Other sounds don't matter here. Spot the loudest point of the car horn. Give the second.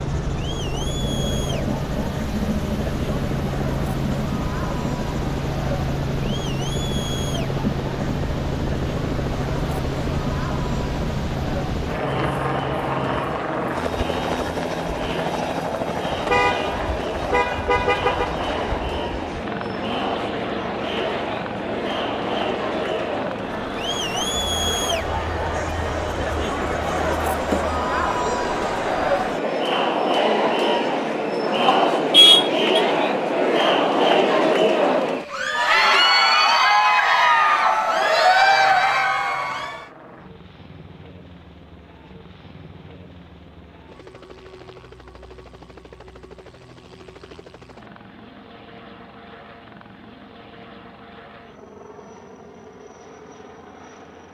32 s.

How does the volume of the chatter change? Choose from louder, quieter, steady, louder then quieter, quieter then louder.
louder.